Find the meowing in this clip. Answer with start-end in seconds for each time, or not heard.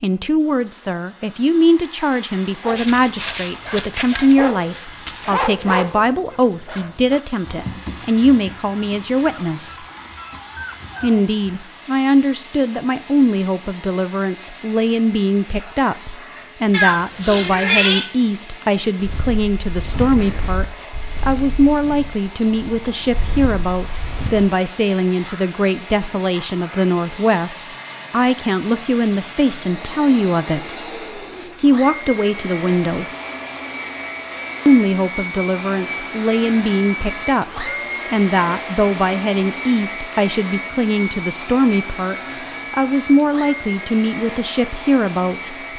16.7-18.1.